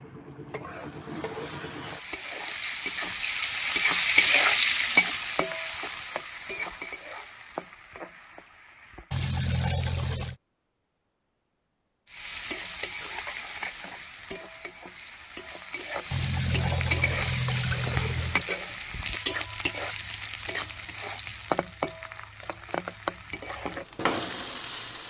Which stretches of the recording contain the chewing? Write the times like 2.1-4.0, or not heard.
not heard.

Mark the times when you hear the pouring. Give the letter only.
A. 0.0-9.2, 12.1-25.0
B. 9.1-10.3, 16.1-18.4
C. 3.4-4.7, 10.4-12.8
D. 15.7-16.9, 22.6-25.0
B.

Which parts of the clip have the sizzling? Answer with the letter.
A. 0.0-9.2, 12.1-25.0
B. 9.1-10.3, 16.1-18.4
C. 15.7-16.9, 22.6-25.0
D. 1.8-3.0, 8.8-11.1
A.